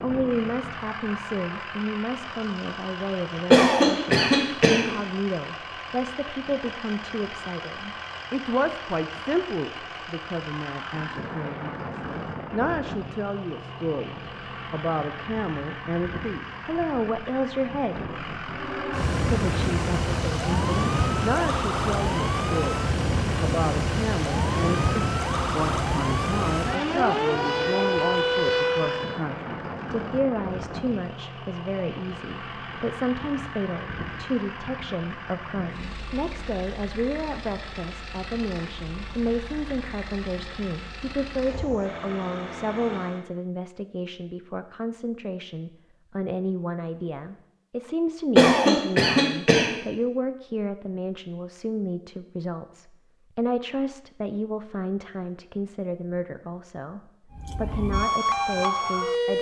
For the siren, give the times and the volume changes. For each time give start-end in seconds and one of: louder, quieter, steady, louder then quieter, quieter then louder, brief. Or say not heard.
18.4-29.2 steady
57.3-59.3 brief.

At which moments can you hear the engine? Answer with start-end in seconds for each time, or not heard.
0.0-43.2.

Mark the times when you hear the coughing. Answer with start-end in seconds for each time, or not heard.
3.5-5.0, 48.4-49.8.